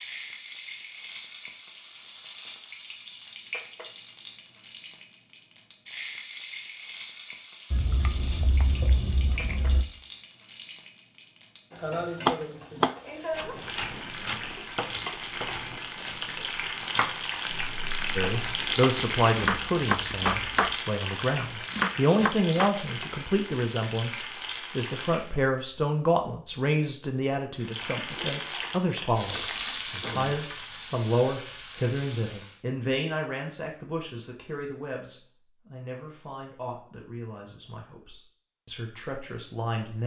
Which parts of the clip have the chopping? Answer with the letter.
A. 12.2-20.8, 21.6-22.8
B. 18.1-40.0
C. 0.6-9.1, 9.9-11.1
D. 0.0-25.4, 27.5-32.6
A.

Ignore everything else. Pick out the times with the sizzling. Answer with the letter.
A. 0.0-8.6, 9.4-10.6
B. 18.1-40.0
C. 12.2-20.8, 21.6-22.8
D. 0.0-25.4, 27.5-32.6
D.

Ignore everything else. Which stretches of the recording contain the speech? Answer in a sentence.
The speech can be heard from 18.1 to 40.0 s.